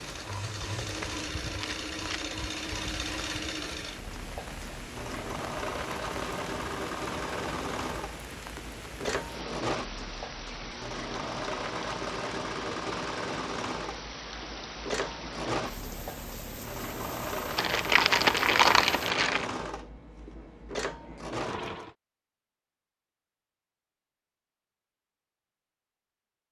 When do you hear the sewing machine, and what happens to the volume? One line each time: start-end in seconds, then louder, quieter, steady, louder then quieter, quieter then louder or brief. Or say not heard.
0.0-21.9 steady.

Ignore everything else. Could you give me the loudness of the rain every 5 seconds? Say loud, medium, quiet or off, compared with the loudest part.
loud, loud, loud, loud, off, off.